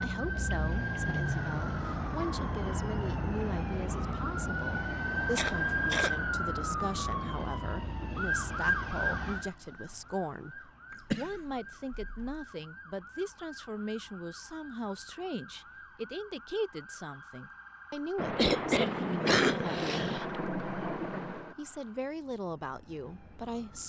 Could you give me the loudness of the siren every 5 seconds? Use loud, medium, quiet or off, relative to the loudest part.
loud, loud, quiet, quiet, quiet.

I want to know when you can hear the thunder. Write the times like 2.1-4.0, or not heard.
18.1-21.6.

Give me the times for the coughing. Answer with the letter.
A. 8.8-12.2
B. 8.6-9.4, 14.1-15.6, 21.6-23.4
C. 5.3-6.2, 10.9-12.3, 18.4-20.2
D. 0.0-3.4
C.